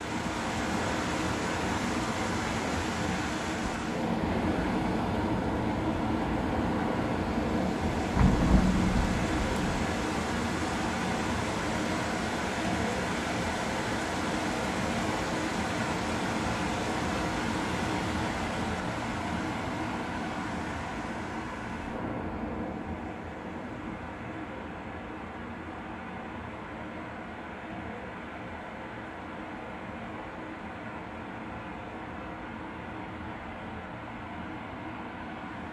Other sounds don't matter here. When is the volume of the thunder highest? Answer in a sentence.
The loudest moment of the thunder is at 8 seconds.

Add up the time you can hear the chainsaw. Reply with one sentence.
You can't hear the chainsaw here.